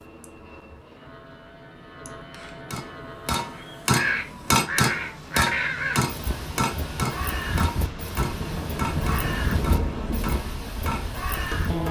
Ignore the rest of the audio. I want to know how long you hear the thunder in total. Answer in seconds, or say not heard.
2 s.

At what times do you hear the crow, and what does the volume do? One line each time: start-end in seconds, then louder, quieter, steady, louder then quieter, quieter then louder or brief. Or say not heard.
3.5-11.8 quieter.